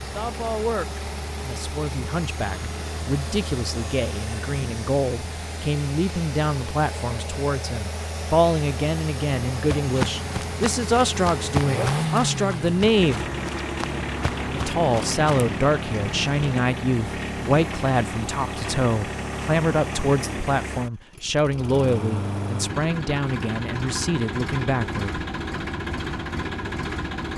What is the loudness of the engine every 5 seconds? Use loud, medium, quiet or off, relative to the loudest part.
medium, medium, loud, loud, loud, loud.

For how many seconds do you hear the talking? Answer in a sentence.
You can hear the talking for 24 seconds altogether.